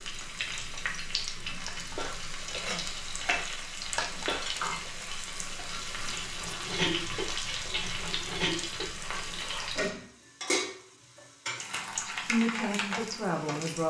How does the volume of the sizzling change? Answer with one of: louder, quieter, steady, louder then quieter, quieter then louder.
steady.